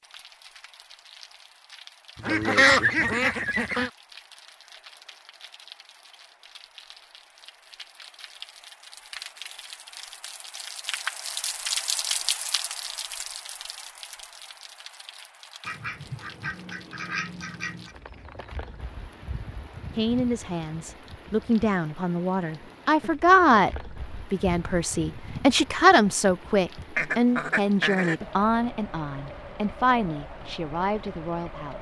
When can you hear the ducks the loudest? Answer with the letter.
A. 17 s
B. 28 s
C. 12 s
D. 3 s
D.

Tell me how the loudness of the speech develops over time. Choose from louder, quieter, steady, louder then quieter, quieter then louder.
louder then quieter.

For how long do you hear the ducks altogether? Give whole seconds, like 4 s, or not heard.
5 s.